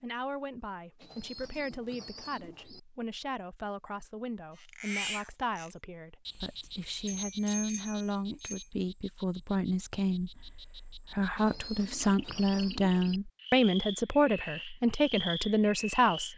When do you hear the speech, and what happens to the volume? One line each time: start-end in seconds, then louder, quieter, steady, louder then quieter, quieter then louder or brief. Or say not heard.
0.0-16.3 louder.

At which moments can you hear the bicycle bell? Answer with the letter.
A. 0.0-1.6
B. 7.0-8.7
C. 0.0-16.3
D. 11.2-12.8
B.